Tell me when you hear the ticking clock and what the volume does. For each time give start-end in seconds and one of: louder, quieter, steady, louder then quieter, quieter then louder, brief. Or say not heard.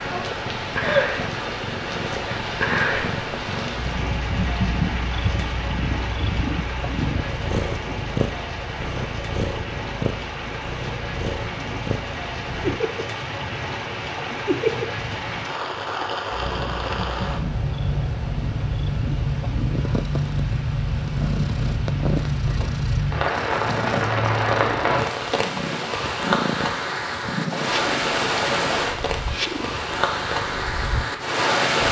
not heard.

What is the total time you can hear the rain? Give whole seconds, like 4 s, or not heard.
32 s.